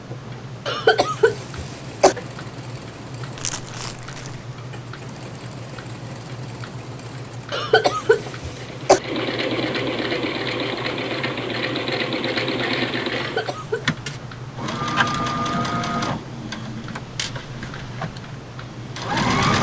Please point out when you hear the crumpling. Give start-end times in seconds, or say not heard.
3.4-4.5.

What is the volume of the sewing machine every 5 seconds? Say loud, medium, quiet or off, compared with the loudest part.
quiet, medium, loud, loud.